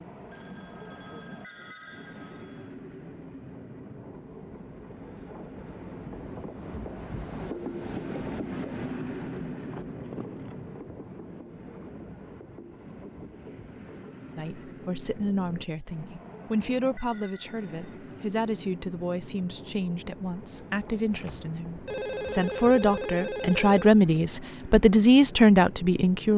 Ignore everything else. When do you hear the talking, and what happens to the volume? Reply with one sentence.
You can hear the talking from 14.3 to 26.3 s, getting louder.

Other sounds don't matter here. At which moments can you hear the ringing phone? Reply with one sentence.
The ringing phone can be heard from 0.3 to 2.8 s, from 9.6 to 10.6 s and from 21.1 to 23.9 s.